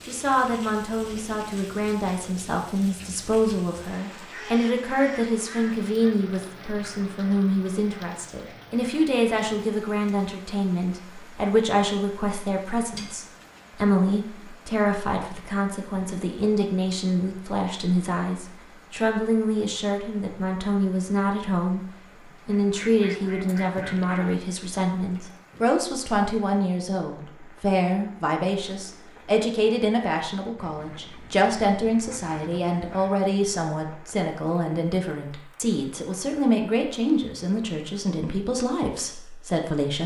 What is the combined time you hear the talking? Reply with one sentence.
You can hear the talking for 39 seconds altogether.